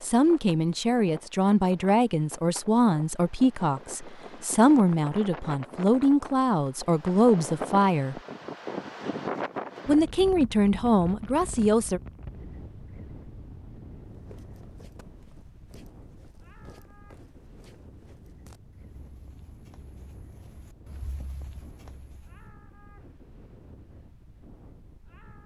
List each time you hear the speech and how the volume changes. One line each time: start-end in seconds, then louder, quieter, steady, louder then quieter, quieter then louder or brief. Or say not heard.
0.0-8.2 steady
9.8-12.0 brief.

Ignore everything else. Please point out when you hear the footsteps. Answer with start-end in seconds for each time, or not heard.
14.1-22.5.